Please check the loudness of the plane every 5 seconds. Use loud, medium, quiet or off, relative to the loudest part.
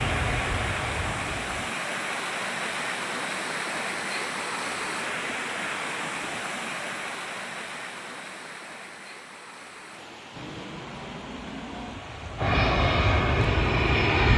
medium, off, loud.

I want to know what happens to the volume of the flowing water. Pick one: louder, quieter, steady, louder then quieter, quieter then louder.
quieter.